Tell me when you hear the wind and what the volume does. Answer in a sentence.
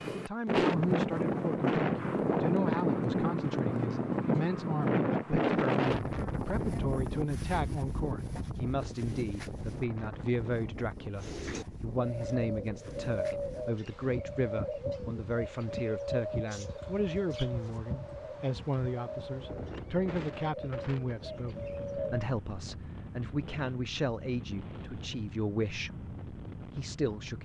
You can hear the wind from 0.0 to 27.4 s, getting quieter.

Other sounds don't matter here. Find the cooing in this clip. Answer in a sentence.
You can hear the cooing from 11.2 to 22.2 s.